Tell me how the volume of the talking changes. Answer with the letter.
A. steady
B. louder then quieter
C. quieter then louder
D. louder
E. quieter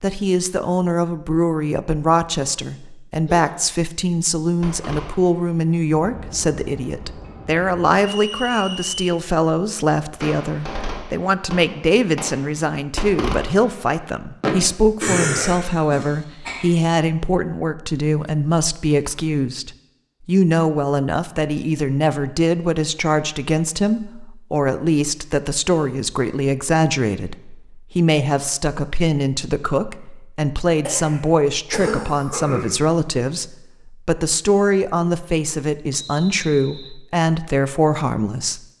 A.